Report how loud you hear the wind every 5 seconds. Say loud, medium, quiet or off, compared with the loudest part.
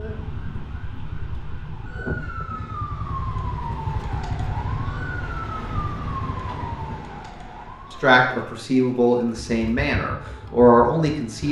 medium, loud, off.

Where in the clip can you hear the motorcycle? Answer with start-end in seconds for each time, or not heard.
0.0-7.0, 9.3-11.4.